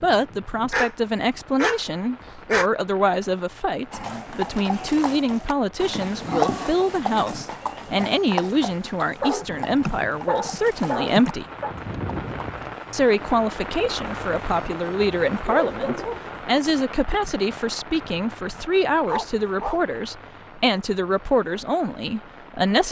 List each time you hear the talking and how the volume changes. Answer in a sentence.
The talking can be heard from 0.0 to 11.4 s, at a steady volume; and from 12.9 to 22.8 s, at a steady volume.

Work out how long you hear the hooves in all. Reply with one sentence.
The hooves can be heard for 9 seconds in total.